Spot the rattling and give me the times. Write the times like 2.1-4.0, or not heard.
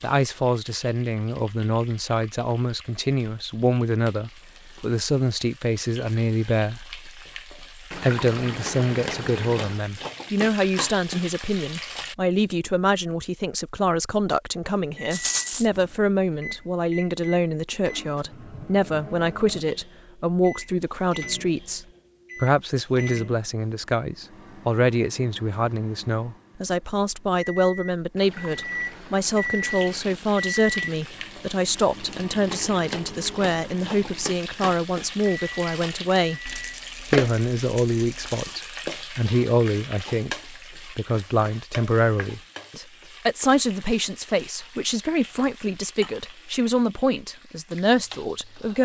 15.1-15.7, 36.5-38.5.